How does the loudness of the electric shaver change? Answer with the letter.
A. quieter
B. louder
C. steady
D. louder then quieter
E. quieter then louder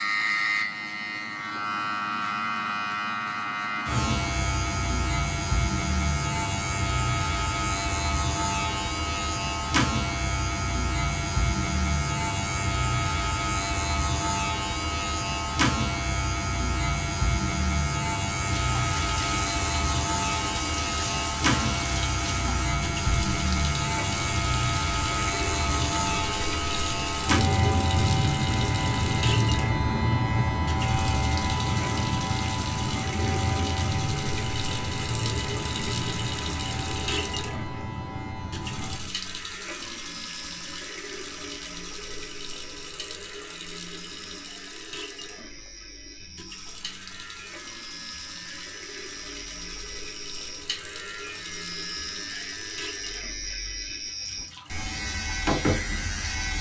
A.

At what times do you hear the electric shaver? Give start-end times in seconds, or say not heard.
0.0-56.5.